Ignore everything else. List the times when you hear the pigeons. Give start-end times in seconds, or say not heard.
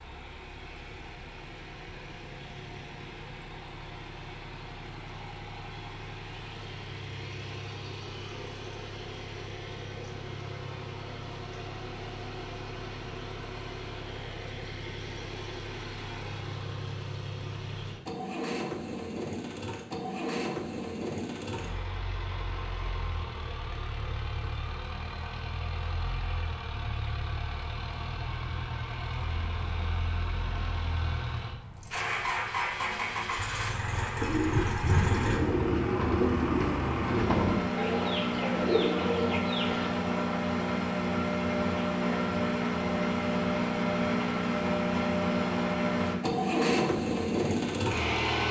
34.2-39.9.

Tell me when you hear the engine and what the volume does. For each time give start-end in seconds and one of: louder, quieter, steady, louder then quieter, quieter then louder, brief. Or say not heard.
0.0-48.4 louder.